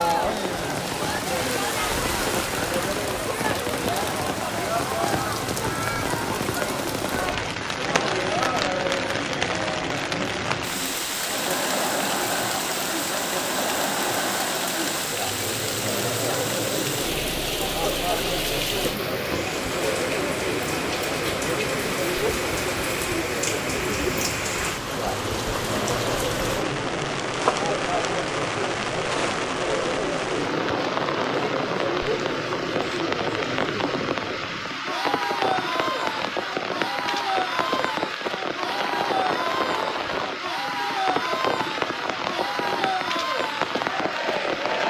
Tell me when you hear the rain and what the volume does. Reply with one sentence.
The rain can be heard from 0.0 to 44.8 s, at a steady volume.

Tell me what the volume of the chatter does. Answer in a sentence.
The loudness of the chatter stays about the same.